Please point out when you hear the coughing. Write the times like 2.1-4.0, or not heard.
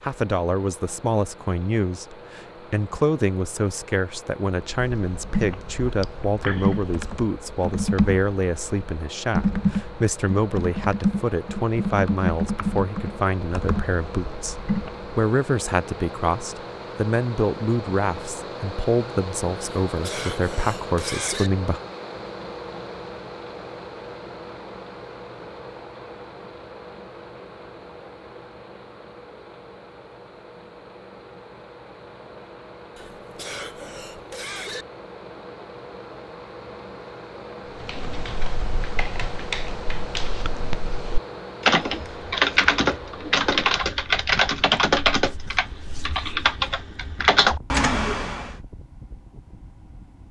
19.9-21.5, 33.0-34.9.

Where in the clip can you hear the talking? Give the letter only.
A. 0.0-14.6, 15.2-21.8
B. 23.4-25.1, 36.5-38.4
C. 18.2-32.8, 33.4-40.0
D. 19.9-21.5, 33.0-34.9
A.